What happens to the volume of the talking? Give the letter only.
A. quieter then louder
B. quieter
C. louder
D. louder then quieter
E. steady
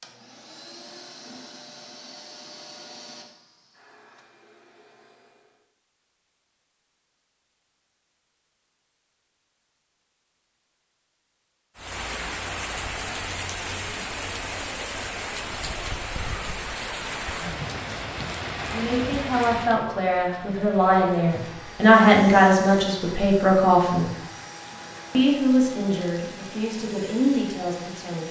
D.